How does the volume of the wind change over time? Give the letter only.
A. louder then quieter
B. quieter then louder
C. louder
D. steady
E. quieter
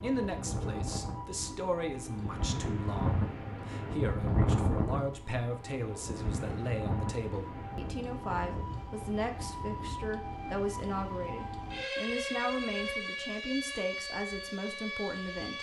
A.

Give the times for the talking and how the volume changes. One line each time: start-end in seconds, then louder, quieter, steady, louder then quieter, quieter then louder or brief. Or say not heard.
0.0-15.5 steady.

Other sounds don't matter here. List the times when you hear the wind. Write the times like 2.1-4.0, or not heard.
0.0-10.2.